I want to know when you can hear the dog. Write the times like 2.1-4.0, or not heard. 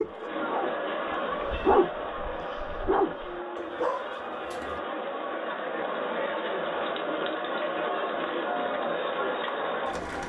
0.0-4.8.